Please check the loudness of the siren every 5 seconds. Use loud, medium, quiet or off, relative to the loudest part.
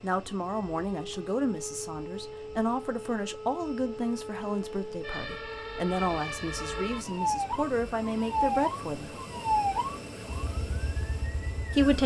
medium, loud, medium.